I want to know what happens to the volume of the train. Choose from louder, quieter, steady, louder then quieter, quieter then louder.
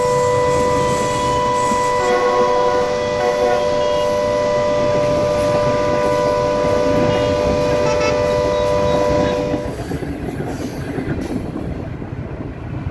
steady.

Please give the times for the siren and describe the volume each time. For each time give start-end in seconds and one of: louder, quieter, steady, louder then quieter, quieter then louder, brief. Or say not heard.
0.0-9.8 steady.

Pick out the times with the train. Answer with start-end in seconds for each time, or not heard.
0.0-12.8.